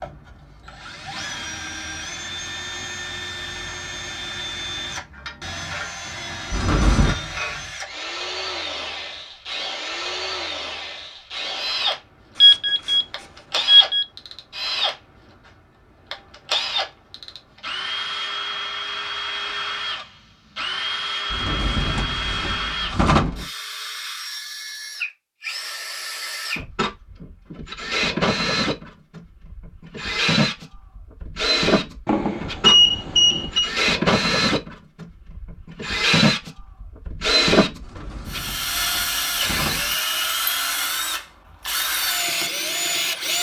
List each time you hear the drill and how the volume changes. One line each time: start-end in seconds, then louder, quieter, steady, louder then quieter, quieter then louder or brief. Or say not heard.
0.0-43.3 louder.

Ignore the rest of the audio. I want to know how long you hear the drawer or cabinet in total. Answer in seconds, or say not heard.
5 s.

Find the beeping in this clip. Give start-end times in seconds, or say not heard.
12.3-14.1, 32.0-33.7.